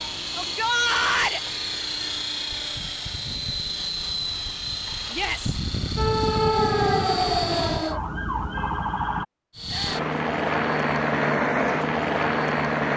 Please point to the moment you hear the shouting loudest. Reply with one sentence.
The loudest moment of the shouting is at 1 second.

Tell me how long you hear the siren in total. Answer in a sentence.
You can hear the siren for 3 seconds altogether.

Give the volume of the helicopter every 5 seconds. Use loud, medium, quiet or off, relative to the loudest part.
medium, medium, loud.